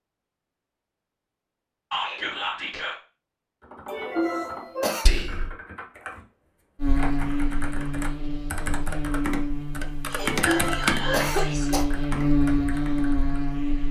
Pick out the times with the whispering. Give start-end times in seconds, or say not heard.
1.9-3.0, 5.0-5.5, 10.1-11.7.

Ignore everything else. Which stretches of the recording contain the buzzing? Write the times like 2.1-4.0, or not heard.
6.8-13.8.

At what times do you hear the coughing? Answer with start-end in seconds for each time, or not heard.
3.9-5.1, 10.2-11.8.